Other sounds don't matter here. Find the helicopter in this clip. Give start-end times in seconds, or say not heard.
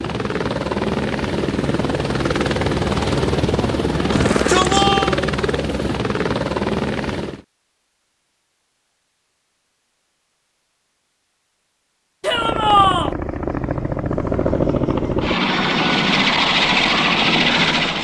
0.0-7.5, 12.2-17.9.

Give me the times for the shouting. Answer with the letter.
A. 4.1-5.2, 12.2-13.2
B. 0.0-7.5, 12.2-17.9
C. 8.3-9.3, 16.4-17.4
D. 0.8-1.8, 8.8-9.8
A.